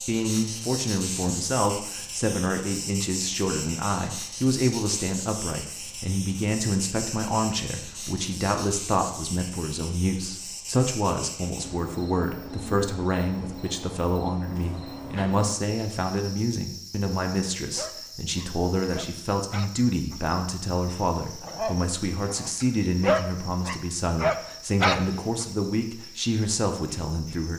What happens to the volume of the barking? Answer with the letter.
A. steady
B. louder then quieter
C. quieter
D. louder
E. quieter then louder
D.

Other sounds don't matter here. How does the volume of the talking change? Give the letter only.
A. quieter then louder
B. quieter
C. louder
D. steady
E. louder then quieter
D.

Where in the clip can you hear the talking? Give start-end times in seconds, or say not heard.
0.0-27.5.